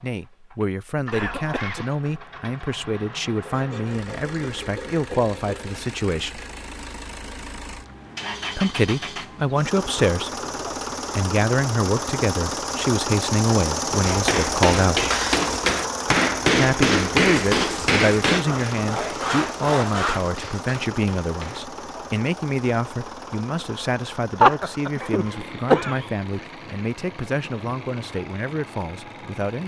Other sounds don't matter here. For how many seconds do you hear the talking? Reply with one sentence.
You can hear the talking for 25 seconds altogether.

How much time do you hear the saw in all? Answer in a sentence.
The saw can be heard for 4 seconds in total.